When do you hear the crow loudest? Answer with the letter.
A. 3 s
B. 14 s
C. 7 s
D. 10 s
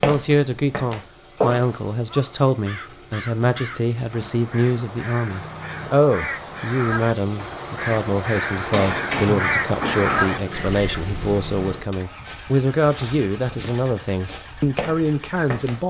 D.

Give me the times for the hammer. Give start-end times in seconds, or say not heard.
8.7-10.3.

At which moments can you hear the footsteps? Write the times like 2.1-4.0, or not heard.
0.0-1.8, 12.1-15.8.